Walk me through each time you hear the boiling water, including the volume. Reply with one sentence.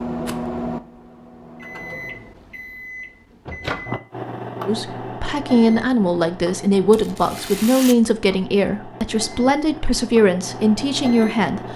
The boiling water can't be heard in this clip.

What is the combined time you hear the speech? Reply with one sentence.
The speech can be heard for 7 seconds in total.